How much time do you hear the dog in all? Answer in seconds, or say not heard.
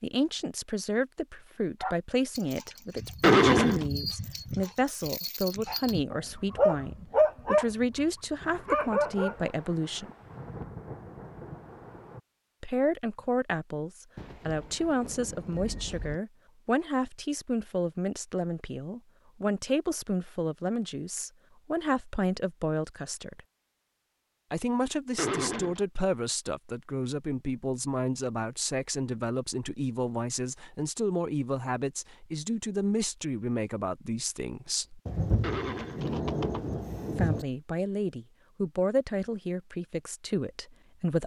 8 s.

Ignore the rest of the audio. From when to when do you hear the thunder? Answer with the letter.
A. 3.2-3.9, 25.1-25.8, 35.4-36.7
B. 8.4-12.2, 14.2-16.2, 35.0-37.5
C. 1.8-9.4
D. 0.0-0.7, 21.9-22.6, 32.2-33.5
B.